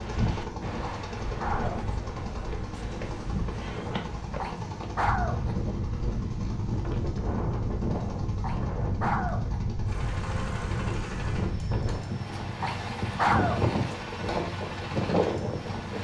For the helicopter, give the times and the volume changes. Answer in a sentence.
The helicopter can be heard from 0.0 to 15.9 s, at a steady volume.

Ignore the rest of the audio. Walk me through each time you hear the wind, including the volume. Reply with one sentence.
The wind can be heard from 0.0 to 15.9 s, getting louder.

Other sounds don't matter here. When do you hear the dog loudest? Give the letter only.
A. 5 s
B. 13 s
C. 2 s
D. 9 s
B.